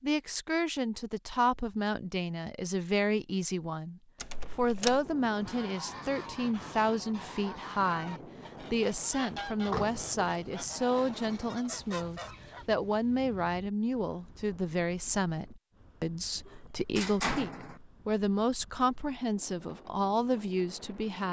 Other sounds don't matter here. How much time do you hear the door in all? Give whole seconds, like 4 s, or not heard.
3 s.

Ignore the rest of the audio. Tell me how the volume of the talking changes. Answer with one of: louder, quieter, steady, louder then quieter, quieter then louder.
steady.